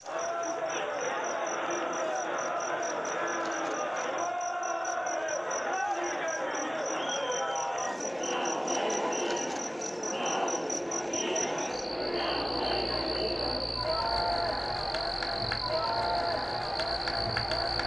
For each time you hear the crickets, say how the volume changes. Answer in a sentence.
The crickets can be heard from 0.0 to 17.8 s, getting louder.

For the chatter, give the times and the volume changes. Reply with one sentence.
You can hear the chatter from 0.0 to 17.8 s, at a steady volume.